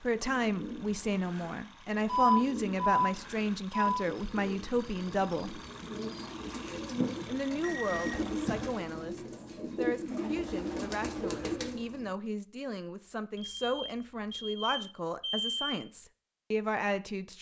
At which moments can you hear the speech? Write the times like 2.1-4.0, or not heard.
0.0-5.6, 7.2-17.3.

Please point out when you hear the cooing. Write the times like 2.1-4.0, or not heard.
0.1-12.1.